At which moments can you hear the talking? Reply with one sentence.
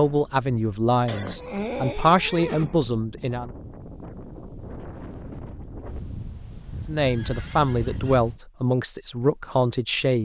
The talking can be heard from 0.0 to 3.5 s and from 6.8 to 10.2 s.